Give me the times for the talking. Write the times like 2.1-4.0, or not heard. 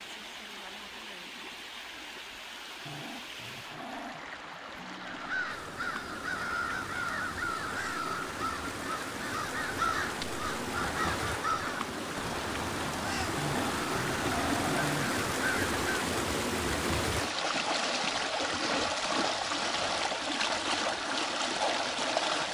not heard.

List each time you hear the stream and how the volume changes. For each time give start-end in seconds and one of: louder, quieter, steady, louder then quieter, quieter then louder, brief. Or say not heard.
0.0-22.4 louder.